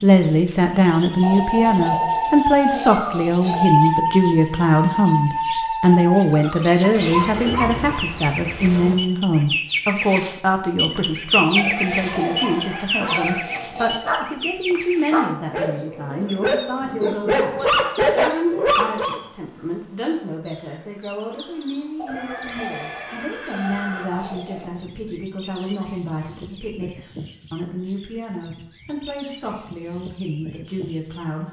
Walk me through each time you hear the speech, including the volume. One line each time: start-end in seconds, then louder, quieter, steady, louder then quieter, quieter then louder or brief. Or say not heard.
0.0-31.4 quieter.